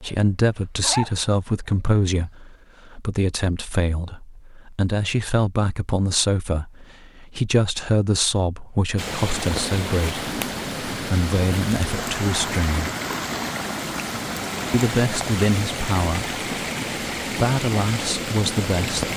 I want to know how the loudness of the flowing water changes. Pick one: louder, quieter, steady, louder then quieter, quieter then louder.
steady.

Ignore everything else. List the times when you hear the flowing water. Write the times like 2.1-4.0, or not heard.
8.9-19.1.